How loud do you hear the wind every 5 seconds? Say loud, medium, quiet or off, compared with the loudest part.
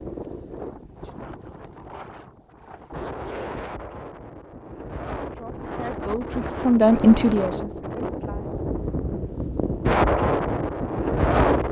quiet, medium, loud.